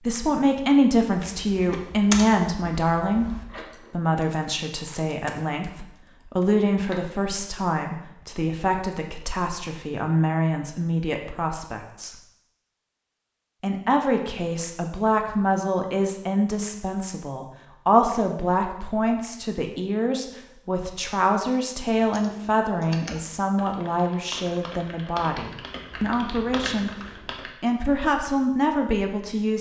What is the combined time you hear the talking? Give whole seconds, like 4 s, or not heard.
27 s.